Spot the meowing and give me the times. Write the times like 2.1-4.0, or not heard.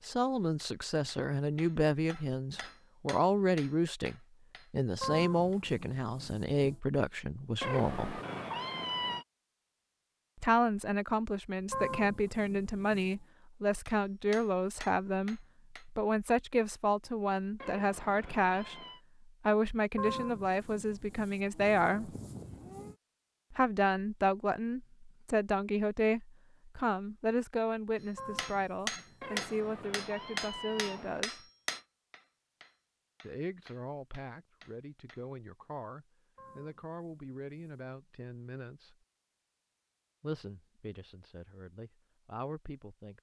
7.6-9.2, 17.6-19.0, 29.2-31.2.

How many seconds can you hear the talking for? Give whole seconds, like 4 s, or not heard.
36 s.